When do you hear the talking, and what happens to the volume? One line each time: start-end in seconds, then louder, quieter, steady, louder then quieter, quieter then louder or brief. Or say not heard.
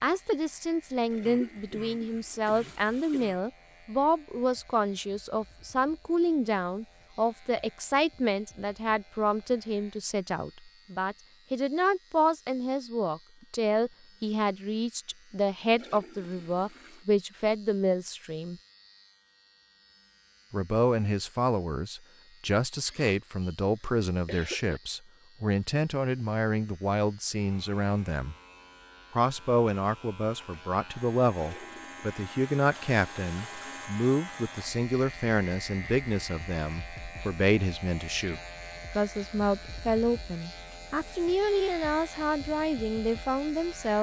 0.0-18.6 steady
20.5-28.4 steady
29.1-43.9 steady.